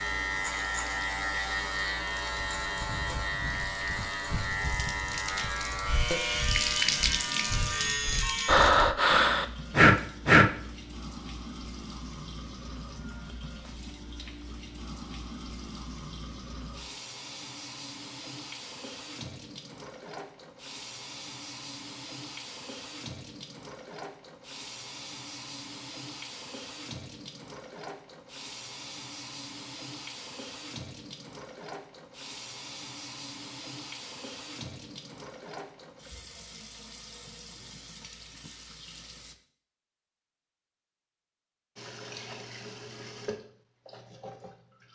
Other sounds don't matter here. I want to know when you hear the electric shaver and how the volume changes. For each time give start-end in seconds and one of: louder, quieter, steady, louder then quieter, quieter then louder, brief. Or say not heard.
0.0-8.7 steady.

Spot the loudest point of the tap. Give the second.
7 s.